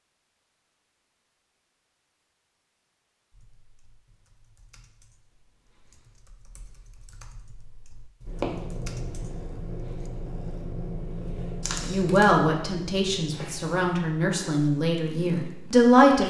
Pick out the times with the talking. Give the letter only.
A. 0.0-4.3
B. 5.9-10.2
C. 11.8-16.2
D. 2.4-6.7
C.